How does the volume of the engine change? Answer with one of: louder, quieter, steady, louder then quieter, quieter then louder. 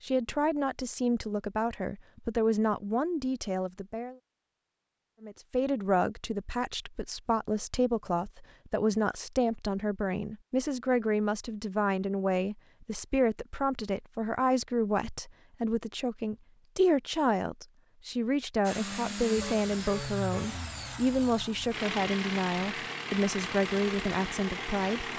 steady.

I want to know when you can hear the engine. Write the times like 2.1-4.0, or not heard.
18.6-25.1.